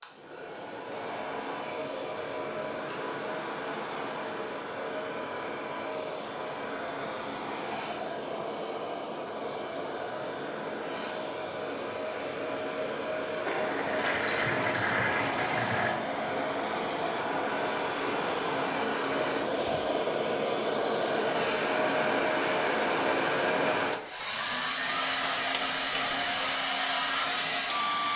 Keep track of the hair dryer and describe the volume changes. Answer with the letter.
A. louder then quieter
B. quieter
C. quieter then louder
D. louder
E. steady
D.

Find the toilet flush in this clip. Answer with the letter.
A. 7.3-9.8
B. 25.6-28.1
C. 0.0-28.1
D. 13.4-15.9
D.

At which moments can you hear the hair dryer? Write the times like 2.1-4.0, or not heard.
0.0-28.1.